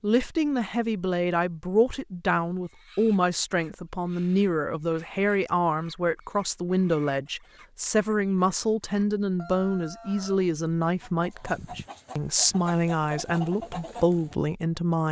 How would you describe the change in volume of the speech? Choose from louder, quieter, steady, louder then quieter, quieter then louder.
steady.